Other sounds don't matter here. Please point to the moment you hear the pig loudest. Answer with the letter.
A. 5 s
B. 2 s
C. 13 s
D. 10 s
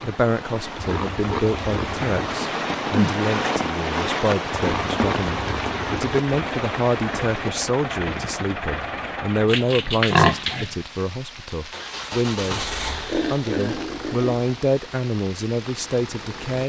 D.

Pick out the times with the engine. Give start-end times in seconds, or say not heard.
6.2-9.5, 11.7-16.6.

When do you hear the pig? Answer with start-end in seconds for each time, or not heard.
0.8-2.2, 4.5-6.2, 9.4-10.8, 12.4-14.4.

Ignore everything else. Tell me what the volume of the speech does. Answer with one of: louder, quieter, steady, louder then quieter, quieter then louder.
steady.